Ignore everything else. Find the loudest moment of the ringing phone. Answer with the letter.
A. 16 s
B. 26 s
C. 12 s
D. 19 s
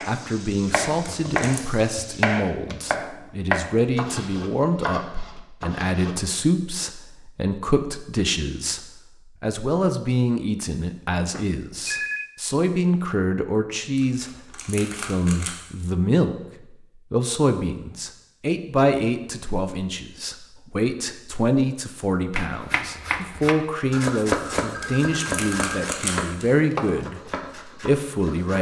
C.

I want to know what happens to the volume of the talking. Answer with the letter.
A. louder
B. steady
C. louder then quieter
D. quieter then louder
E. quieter
B.